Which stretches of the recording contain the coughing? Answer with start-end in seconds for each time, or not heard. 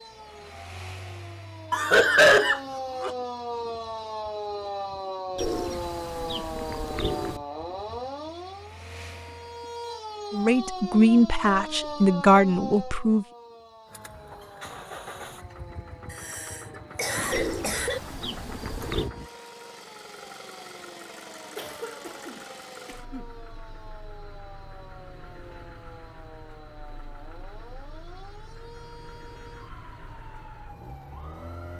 1.7-3.1, 16.1-18.0, 21.6-23.2.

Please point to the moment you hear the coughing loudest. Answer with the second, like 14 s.
2 s.